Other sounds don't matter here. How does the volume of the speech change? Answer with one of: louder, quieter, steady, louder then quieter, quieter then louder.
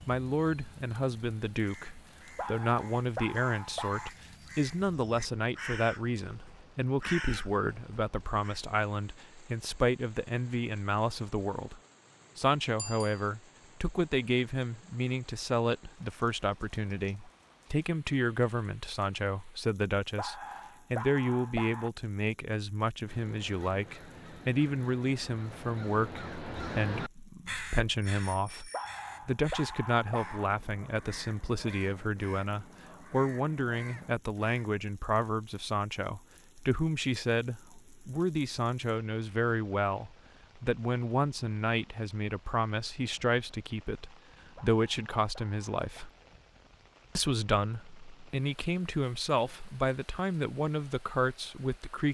steady.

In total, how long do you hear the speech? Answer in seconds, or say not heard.
51 s.